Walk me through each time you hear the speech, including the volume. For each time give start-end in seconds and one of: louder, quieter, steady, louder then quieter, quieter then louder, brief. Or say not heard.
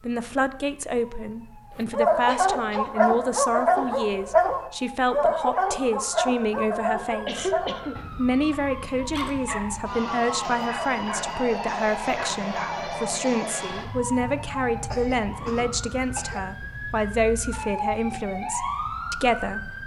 0.0-19.8 steady.